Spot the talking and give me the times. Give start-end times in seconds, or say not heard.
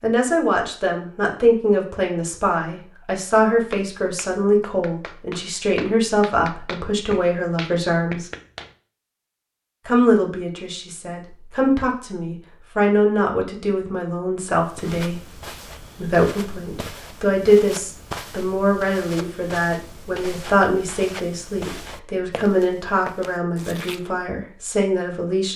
0.0-8.3, 9.8-15.2, 15.9-25.5.